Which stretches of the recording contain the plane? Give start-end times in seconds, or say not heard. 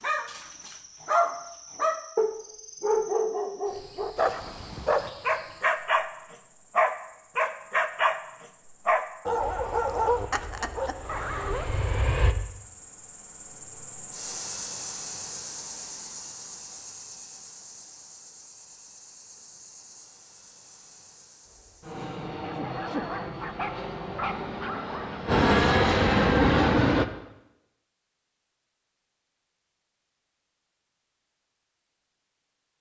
9.4-12.3, 21.4-27.1.